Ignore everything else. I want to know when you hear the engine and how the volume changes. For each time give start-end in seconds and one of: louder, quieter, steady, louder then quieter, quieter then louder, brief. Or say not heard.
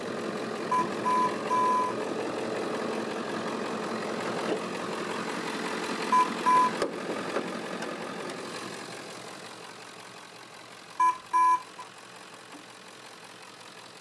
0.0-13.9 quieter.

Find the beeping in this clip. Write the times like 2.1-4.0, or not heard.
0.7-1.9, 6.1-6.8, 10.9-11.8.